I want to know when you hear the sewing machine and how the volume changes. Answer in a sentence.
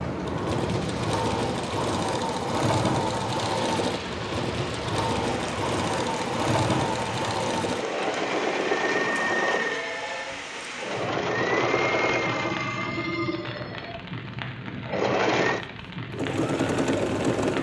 The sewing machine can be heard from 0.0 to 17.5 s, at a steady volume.